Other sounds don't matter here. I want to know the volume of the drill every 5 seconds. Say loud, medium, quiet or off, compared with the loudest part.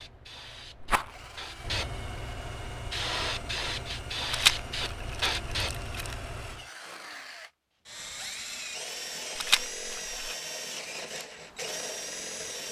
medium, loud, loud.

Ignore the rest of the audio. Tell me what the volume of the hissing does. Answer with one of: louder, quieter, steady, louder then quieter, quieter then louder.
louder.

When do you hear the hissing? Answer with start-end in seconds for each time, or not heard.
0.0-6.6.